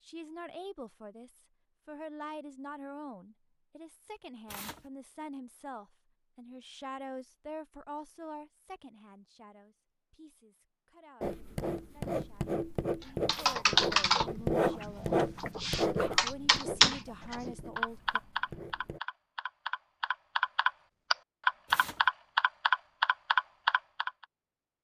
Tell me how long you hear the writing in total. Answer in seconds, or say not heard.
8 s.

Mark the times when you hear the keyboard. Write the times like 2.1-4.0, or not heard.
13.0-24.1.